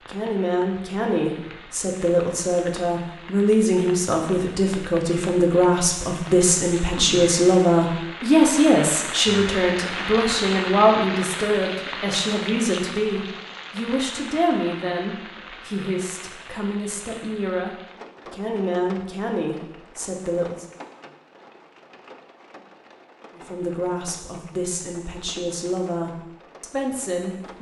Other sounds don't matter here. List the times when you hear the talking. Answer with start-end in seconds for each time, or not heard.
0.1-20.6, 23.4-27.5.